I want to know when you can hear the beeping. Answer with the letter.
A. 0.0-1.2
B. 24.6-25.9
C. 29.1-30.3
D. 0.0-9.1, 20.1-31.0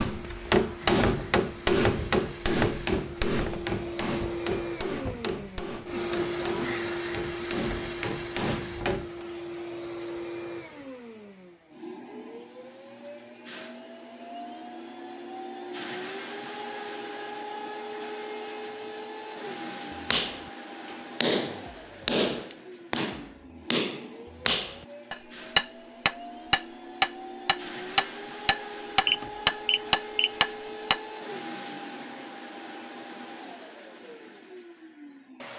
C.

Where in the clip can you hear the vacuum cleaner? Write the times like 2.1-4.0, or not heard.
0.0-35.5.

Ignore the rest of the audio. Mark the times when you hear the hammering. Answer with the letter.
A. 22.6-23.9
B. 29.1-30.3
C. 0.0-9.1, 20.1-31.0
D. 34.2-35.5
C.